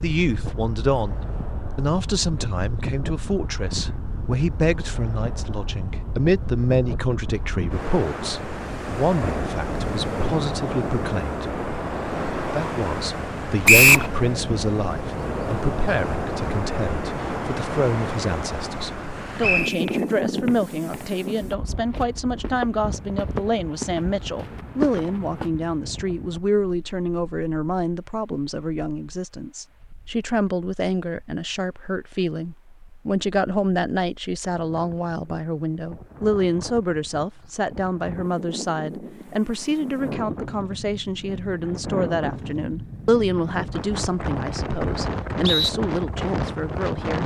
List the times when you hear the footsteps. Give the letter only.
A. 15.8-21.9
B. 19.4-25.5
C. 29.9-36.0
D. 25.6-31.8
B.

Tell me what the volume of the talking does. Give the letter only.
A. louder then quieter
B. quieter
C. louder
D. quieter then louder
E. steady
E.